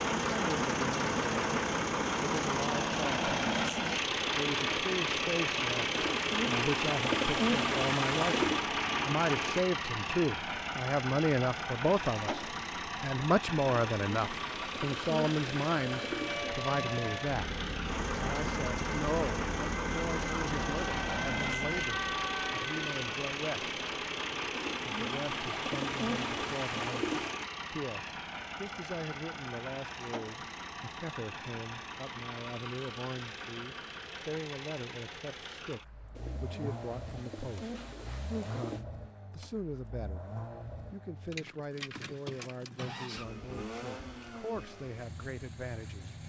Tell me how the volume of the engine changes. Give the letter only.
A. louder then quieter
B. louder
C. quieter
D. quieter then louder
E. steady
C.